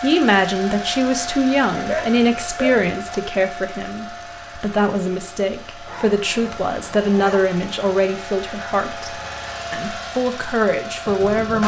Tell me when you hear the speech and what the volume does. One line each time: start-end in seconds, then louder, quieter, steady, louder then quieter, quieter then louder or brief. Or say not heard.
0.0-11.6 steady.